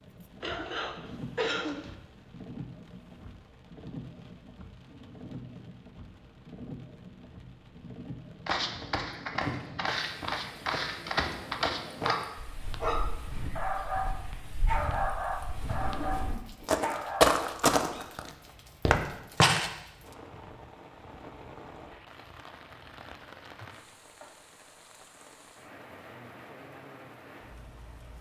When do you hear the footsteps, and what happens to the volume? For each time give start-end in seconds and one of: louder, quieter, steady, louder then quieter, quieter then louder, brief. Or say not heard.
8.4-19.7 quieter then louder.